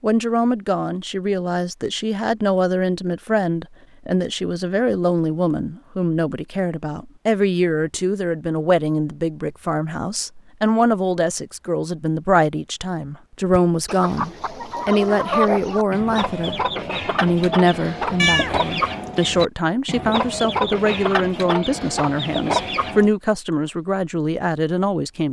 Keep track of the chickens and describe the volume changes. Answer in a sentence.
The volume of the chickens stays about the same.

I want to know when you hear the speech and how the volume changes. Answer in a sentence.
The speech can be heard from 0.0 to 25.2 s, at a steady volume.